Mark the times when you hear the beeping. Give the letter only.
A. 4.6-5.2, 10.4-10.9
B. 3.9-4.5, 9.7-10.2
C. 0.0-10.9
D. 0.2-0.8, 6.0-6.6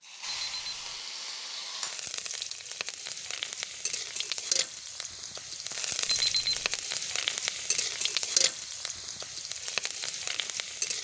D.